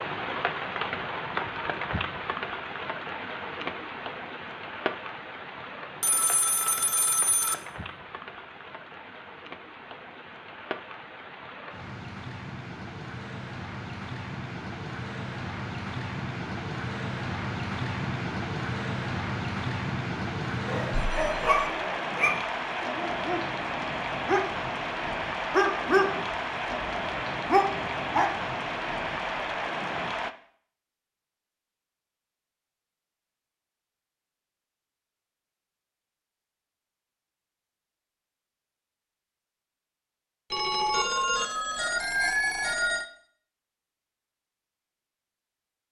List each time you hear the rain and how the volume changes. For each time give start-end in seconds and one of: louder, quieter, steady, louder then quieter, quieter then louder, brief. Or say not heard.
0.0-30.3 quieter then louder.